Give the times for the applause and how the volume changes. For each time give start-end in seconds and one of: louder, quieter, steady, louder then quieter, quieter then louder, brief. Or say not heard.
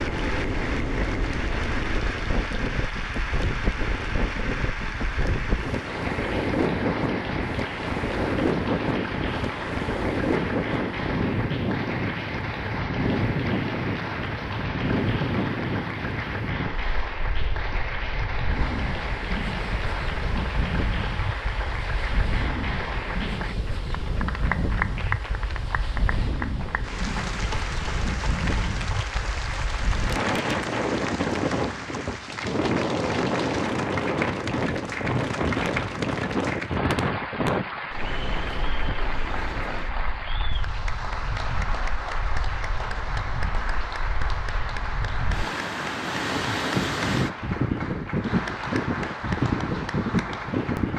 0.0-50.9 steady.